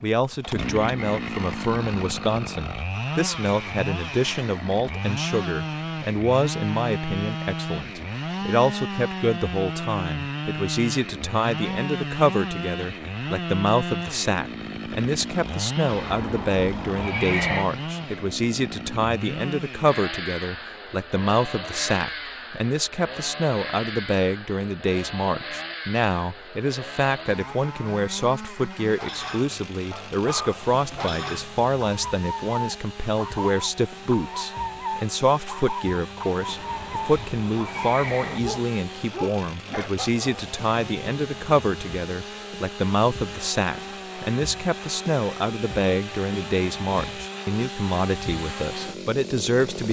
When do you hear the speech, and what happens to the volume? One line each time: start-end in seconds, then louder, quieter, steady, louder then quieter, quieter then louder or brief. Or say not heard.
0.0-49.8 steady.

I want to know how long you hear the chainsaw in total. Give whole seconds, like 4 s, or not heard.
50 s.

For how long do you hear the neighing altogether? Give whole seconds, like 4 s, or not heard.
4 s.